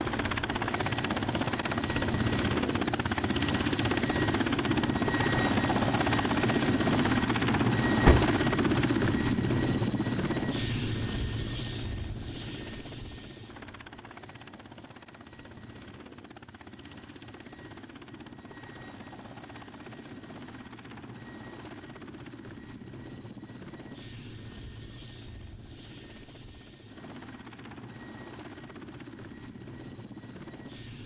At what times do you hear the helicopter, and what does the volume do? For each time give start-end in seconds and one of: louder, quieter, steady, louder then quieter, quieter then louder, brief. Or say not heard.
0.0-31.0 quieter.